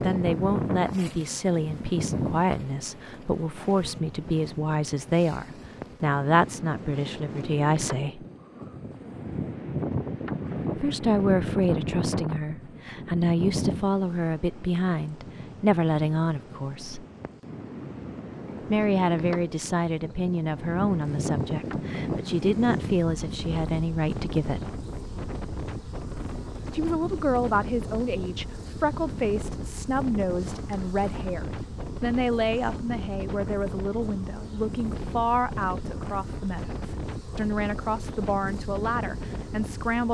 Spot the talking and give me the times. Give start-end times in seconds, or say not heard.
0.0-8.2, 10.8-17.1, 18.7-24.7, 26.7-40.0.